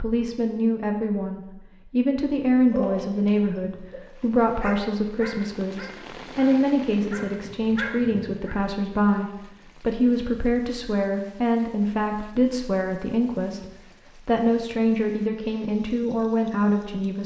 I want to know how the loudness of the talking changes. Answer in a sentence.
The volume of the talking stays about the same.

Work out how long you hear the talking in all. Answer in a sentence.
You can hear the talking for 17 seconds altogether.